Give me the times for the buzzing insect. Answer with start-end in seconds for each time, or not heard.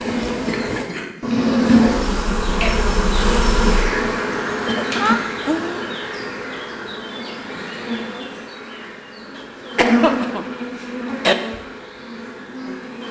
0.0-13.0.